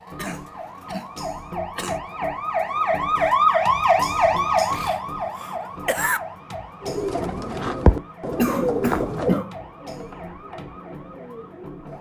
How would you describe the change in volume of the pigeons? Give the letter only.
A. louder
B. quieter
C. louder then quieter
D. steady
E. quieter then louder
B.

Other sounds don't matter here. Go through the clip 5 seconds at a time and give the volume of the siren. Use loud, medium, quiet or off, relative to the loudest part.
loud, quiet, quiet.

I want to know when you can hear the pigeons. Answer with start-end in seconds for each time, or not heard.
6.8-11.9.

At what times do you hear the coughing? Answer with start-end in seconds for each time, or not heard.
0.1-2.0, 4.2-6.2, 8.3-9.6.